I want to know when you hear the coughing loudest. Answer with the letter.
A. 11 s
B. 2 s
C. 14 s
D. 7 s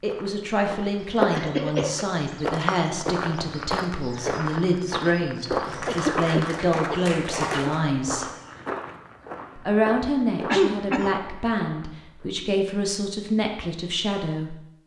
A.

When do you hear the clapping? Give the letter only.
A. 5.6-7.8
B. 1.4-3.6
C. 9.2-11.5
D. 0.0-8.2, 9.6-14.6
A.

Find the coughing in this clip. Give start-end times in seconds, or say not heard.
1.4-2.0, 5.8-7.7, 10.0-11.3.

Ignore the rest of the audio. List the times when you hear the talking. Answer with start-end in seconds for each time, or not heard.
0.0-8.2, 9.6-14.6.